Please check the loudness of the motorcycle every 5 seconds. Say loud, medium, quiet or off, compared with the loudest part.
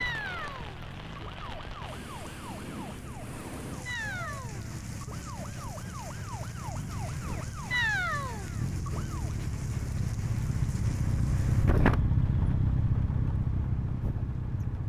quiet, medium, loud.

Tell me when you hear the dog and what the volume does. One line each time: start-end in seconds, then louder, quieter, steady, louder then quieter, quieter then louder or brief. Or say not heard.
not heard.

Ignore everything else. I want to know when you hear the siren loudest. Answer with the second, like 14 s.
8 s.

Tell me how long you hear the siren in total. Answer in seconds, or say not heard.
9 s.